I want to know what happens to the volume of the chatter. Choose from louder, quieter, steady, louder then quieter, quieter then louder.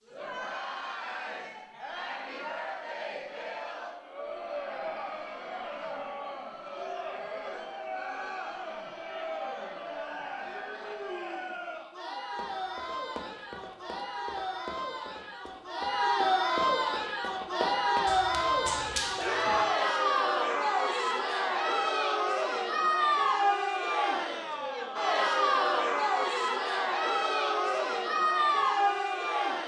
louder.